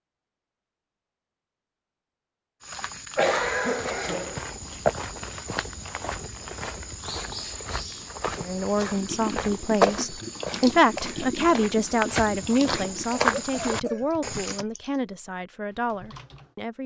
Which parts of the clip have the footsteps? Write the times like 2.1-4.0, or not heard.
2.6-14.7.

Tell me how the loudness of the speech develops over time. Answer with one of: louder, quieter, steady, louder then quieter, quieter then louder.
louder then quieter.